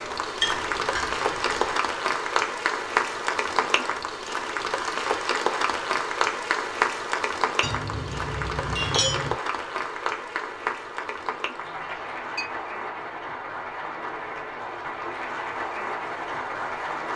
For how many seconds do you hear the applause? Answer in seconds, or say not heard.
17 s.